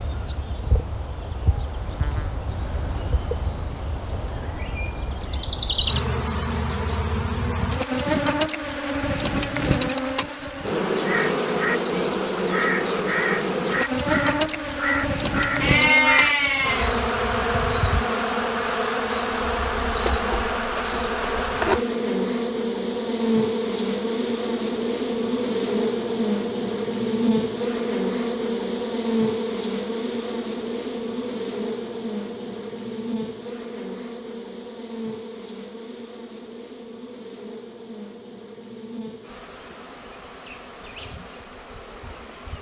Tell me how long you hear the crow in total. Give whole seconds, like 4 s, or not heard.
7 s.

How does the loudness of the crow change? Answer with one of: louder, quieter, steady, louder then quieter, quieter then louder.
quieter.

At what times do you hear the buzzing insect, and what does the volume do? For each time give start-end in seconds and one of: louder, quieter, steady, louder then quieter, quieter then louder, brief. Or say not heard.
0.0-42.5 quieter.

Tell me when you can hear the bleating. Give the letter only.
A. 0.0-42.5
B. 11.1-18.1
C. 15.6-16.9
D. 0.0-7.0
C.